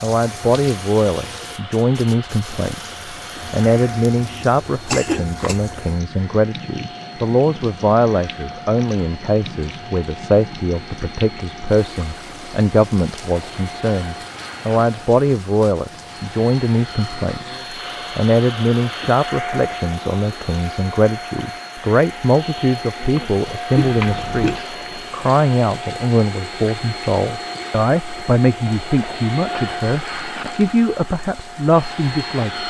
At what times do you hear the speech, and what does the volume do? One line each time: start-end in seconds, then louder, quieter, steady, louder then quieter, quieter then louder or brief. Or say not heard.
0.0-32.6 steady.